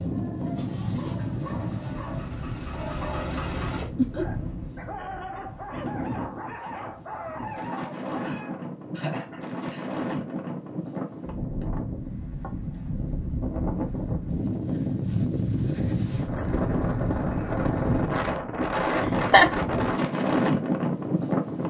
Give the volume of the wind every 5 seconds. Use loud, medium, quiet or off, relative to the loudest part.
medium, medium, medium, loud, loud.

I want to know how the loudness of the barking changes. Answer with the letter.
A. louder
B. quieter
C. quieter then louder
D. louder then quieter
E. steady
A.